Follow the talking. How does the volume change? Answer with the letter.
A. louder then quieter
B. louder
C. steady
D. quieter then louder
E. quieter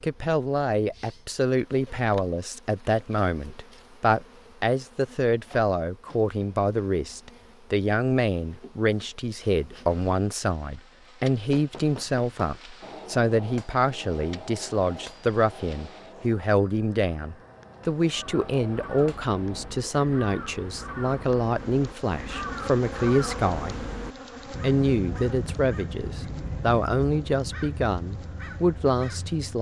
C.